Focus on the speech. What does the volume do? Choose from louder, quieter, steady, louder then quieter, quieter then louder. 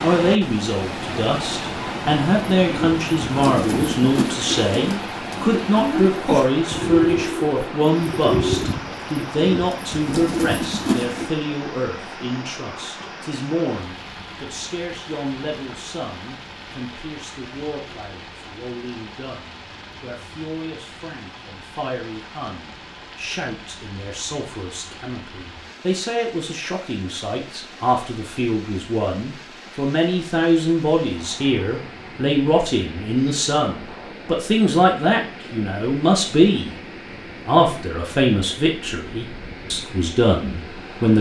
quieter then louder.